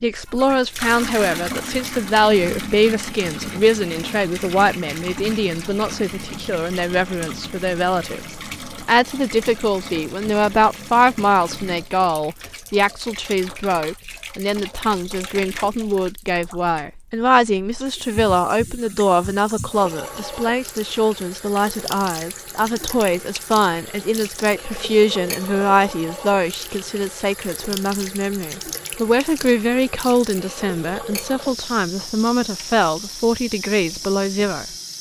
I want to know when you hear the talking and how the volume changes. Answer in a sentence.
You can hear the talking from 0.0 to 34.6 s, at a steady volume.